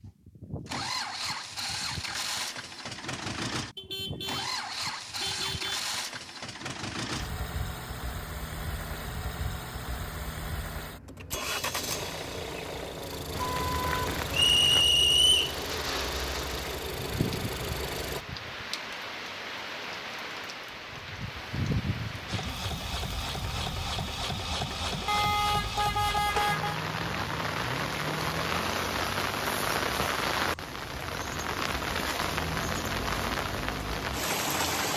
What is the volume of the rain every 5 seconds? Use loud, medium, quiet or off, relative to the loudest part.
off, off, medium, medium, medium, loud, loud.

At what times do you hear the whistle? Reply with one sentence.
You can hear the whistle from 14.3 to 15.6 s.